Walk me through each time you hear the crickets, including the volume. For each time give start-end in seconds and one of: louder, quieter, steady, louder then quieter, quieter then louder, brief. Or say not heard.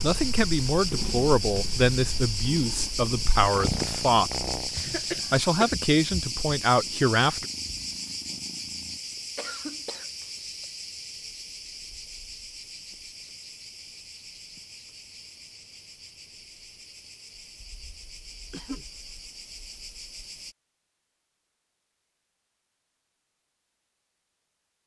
0.0-20.6 quieter.